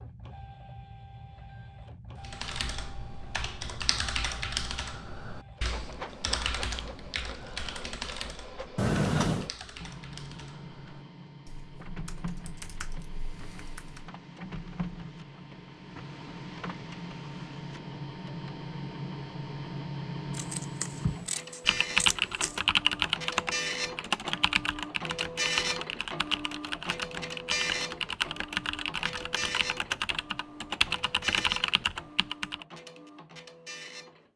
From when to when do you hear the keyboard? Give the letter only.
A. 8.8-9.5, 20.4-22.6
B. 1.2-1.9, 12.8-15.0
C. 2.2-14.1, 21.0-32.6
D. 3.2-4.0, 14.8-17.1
C.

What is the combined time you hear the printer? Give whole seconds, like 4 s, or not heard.
34 s.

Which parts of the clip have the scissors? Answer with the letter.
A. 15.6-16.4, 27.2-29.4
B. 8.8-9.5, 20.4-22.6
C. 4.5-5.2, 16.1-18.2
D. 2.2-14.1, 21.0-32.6
B.